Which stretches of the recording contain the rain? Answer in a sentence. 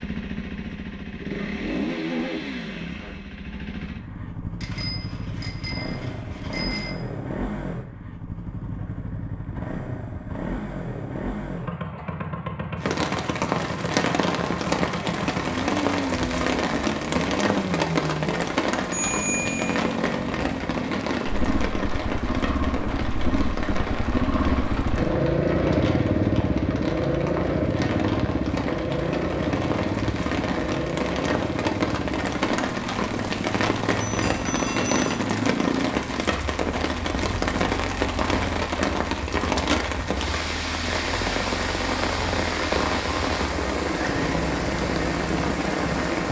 You can hear the rain from 12.8 to 46.2 s.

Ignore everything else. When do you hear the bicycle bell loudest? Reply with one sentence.
The loudest moment of the bicycle bell is at 19 seconds.